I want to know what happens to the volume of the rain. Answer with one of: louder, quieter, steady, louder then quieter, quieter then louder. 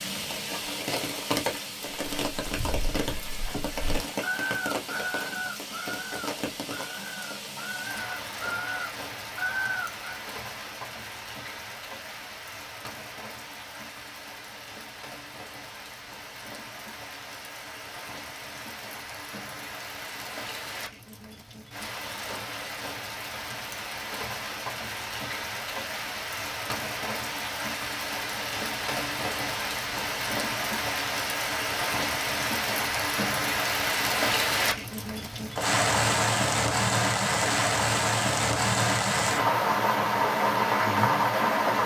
quieter then louder.